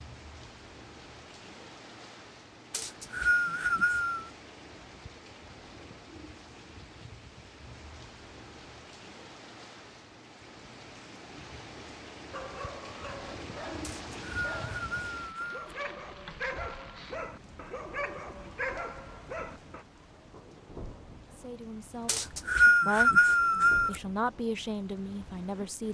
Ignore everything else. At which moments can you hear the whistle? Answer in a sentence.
You can hear the whistle from 2.7 to 4.3 s, from 13.8 to 15.7 s and from 22.1 to 23.9 s.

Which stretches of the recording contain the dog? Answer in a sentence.
You can hear the dog from 12.3 to 19.9 s.